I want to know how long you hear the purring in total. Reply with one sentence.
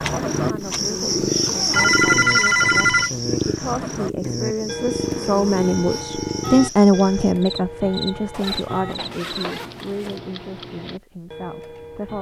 You can hear the purring for 7 seconds altogether.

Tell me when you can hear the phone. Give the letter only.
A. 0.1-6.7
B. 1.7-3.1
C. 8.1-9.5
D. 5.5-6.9
B.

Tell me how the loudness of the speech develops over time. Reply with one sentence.
The loudness of the speech goes up, then down.